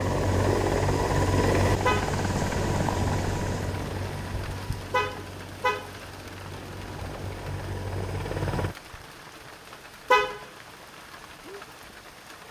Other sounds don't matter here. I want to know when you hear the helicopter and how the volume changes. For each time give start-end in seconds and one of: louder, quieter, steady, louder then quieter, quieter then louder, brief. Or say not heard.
0.0-8.8 quieter then louder.